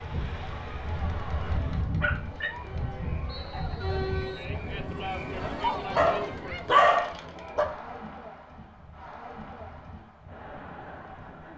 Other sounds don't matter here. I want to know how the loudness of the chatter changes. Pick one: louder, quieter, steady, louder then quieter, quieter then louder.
louder then quieter.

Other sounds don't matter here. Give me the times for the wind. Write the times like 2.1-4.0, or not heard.
0.0-11.5.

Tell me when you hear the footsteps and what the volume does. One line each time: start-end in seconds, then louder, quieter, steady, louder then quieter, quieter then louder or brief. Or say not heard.
not heard.